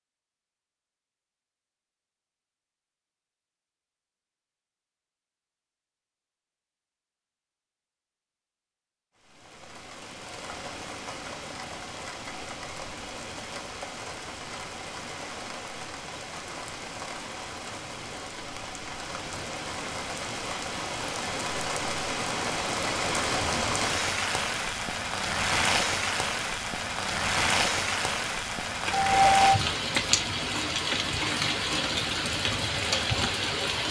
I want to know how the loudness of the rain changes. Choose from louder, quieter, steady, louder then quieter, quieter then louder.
louder.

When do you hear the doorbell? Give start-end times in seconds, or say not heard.
28.9-29.6.